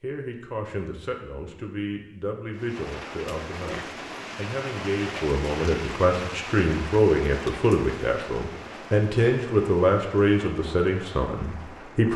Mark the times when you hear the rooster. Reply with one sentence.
You can't hear the rooster here.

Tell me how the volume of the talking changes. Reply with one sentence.
The volume of the talking goes up.